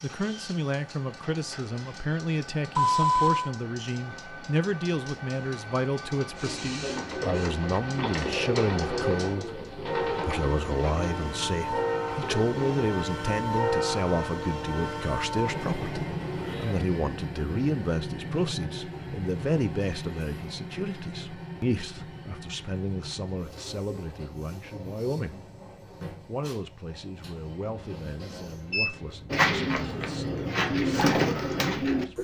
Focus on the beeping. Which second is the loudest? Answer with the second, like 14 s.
3 s.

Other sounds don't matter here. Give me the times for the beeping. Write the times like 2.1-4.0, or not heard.
2.8-3.5, 28.3-28.9.